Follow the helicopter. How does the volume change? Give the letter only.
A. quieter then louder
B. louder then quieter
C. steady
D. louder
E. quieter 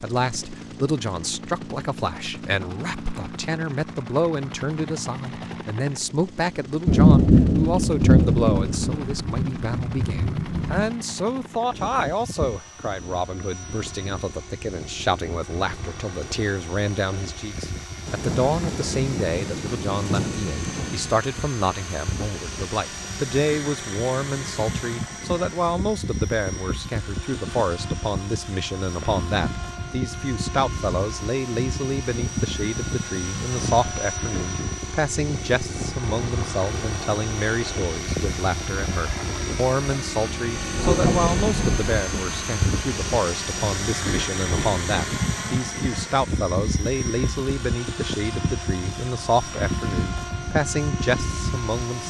D.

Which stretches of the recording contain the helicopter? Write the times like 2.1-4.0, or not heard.
0.0-52.0.